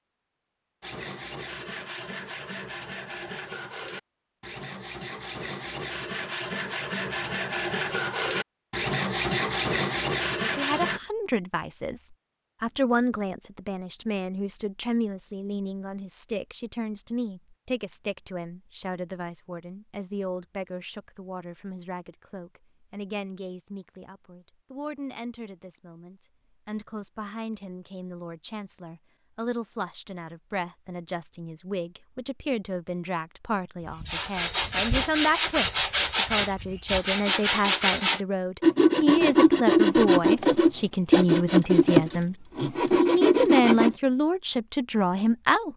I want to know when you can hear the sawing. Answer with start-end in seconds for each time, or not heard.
0.8-11.0, 34.0-44.0.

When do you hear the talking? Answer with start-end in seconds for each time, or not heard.
10.4-45.7.